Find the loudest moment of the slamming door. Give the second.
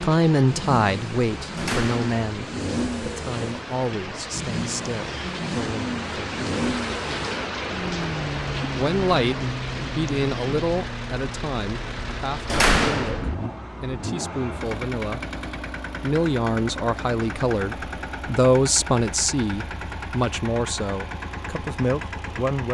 13 s.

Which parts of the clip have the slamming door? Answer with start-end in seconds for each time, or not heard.
1.6-2.2, 12.4-13.3.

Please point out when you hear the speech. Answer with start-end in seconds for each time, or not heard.
0.0-6.5, 8.7-15.2, 16.0-22.6.